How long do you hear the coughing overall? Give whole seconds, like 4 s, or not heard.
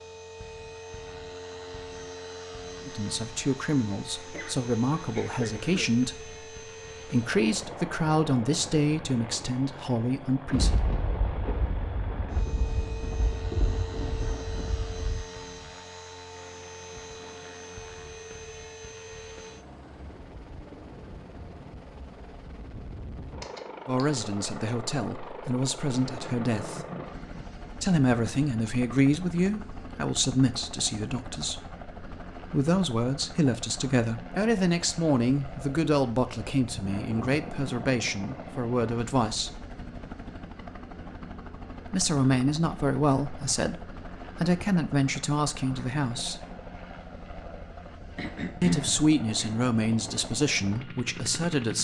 4 s.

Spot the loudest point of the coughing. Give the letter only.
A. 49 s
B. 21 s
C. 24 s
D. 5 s
A.